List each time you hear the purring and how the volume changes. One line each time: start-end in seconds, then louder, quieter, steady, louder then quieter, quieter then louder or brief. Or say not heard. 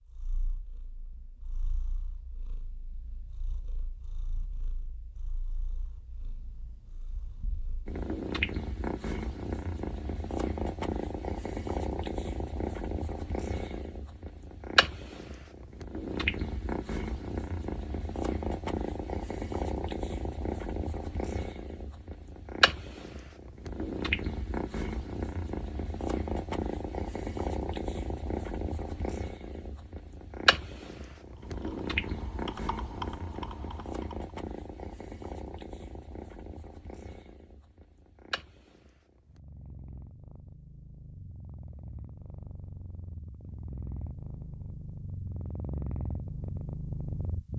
0.1-47.5 louder then quieter.